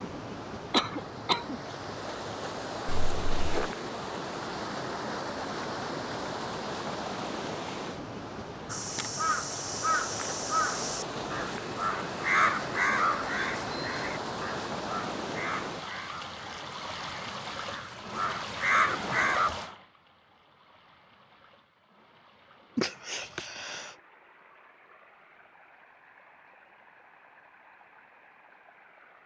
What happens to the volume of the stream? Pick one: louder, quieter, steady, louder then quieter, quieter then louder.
quieter.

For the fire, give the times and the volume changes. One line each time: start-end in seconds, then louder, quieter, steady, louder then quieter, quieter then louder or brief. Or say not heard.
not heard.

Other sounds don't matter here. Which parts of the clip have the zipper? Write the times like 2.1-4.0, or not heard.
2.9-3.7.